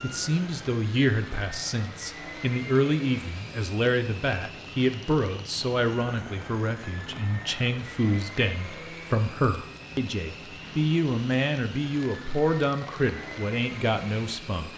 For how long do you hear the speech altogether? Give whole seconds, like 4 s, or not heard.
15 s.